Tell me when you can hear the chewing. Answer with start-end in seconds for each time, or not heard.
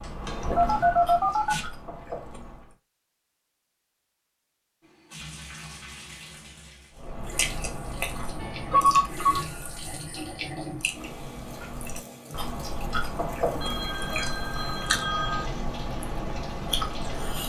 0.0-2.8, 7.0-17.4.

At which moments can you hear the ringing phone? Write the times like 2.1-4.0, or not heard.
0.6-1.6, 8.3-9.4, 13.6-15.5.